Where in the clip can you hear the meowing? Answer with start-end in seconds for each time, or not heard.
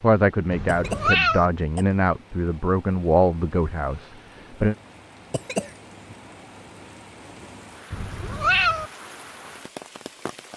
0.5-1.5, 7.9-8.9.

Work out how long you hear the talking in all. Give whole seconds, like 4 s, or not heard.
5 s.